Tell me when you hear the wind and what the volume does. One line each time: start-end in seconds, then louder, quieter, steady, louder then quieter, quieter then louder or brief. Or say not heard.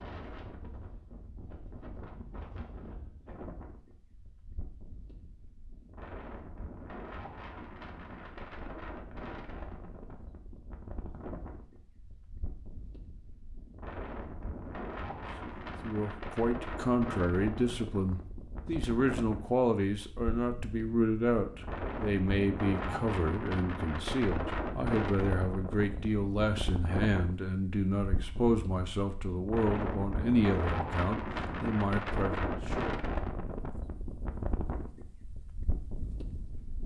0.0-36.8 louder.